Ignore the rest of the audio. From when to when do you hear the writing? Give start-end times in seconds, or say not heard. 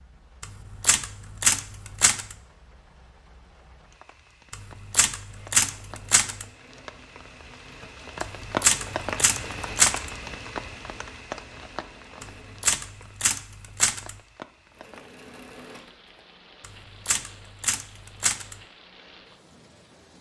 not heard.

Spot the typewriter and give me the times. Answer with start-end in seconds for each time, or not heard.
0.4-2.4, 4.5-6.5, 8.2-10.1, 12.2-14.2, 16.6-18.6.